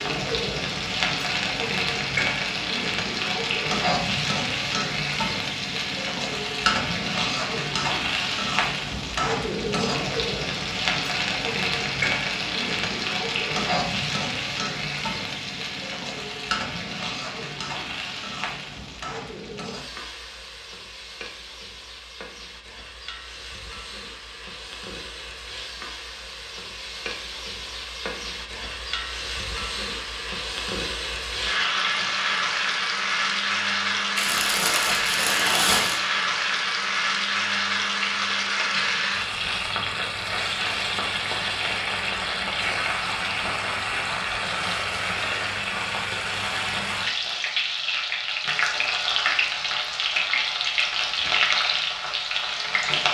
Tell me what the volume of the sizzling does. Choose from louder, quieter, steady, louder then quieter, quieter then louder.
quieter then louder.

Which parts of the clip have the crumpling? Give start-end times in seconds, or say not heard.
34.1-36.0.